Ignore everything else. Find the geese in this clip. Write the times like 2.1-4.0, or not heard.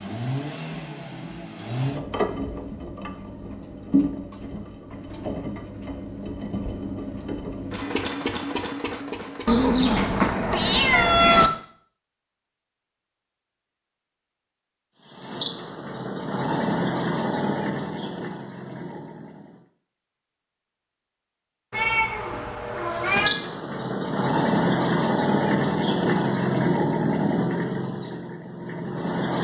not heard.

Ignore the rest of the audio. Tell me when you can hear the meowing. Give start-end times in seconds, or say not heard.
9.4-11.5, 21.7-23.3.